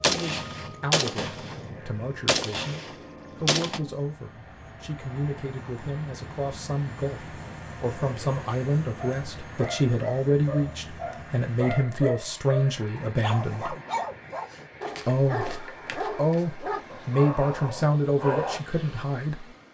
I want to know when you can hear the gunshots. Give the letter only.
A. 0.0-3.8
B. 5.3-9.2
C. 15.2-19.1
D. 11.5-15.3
A.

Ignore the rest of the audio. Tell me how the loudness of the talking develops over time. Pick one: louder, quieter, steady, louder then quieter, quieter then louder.
louder.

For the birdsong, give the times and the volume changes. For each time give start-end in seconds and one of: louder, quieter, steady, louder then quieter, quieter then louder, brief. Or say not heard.
not heard.